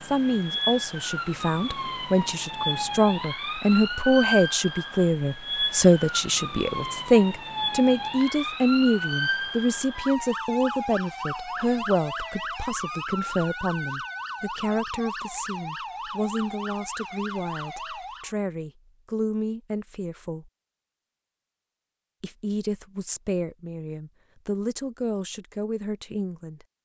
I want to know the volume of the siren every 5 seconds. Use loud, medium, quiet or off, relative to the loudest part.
loud, loud, loud, medium, off, off.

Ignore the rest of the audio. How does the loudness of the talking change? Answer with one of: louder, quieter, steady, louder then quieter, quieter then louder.
quieter.